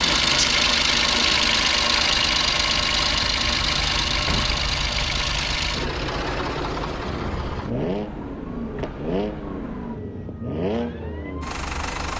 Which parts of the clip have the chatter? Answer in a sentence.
The chatter can't be heard in this clip.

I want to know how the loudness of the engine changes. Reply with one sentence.
The loudness of the engine goes down.